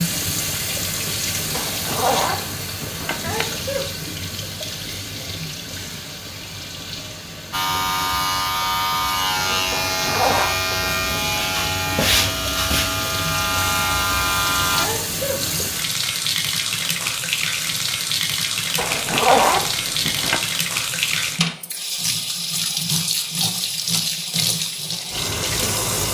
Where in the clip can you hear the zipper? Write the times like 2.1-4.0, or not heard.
1.5-3.5, 9.7-10.6, 18.8-20.4.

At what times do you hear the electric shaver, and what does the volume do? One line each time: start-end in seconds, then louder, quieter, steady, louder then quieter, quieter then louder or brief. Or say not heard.
7.5-14.8 steady.